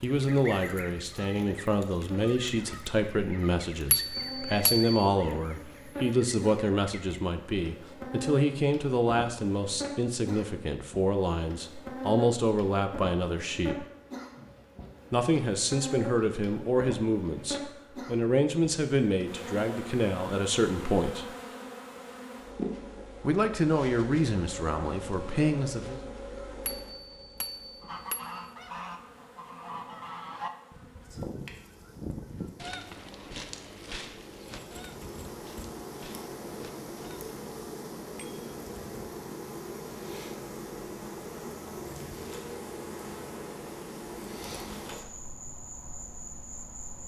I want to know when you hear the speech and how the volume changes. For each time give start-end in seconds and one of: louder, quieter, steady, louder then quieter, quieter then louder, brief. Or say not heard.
0.0-13.8 steady
15.1-21.3 steady
23.2-26.0 brief.